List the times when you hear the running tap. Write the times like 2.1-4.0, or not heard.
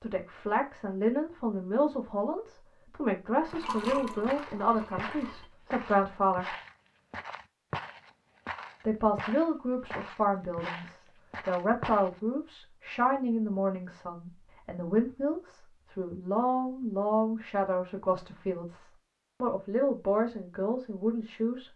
3.5-5.5.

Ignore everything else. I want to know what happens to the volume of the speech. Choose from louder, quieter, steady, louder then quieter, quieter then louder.
steady.